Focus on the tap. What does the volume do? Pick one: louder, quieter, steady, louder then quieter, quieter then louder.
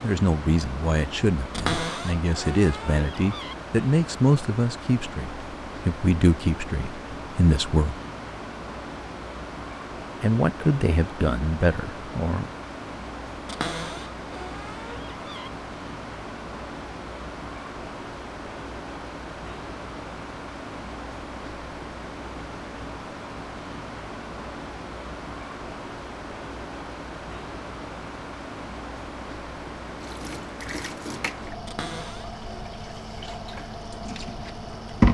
quieter then louder.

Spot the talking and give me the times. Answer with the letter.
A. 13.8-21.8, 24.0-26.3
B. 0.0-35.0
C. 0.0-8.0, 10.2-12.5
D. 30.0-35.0
C.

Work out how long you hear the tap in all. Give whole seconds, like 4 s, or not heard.
5 s.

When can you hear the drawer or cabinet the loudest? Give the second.
2 s.